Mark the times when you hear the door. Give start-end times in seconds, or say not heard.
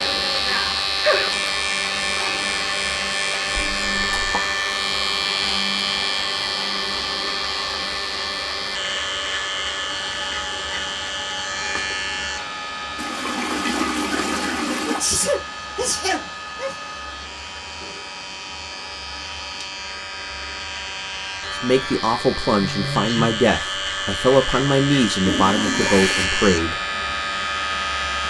not heard.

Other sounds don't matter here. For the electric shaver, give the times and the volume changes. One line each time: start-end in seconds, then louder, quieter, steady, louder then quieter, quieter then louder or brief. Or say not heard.
0.0-28.2 quieter then louder.